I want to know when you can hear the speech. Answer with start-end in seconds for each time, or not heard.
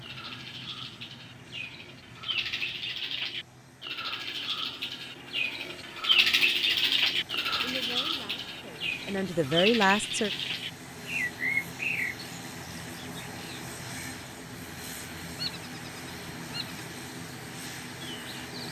7.6-10.3.